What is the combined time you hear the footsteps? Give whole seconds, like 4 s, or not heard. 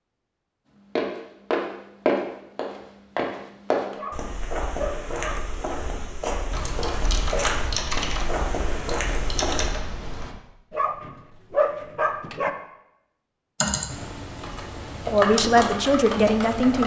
9 s.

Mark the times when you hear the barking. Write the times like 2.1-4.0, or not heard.
4.0-5.5, 10.7-12.5.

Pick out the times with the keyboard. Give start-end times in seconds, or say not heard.
6.5-10.3, 13.6-16.8.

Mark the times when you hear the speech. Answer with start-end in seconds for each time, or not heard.
15.1-16.8.